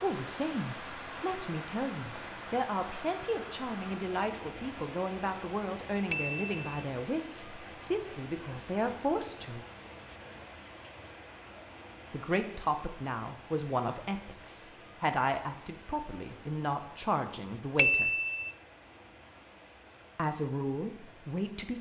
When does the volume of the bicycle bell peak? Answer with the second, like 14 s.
18 s.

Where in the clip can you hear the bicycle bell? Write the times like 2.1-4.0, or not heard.
6.1-6.8, 17.8-18.5.